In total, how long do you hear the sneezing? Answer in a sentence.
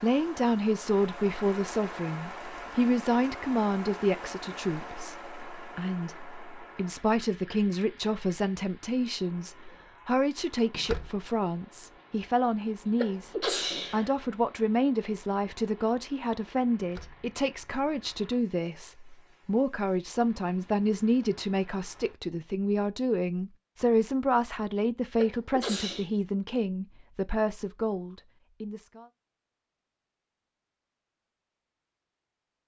You can hear the sneezing for 2 seconds altogether.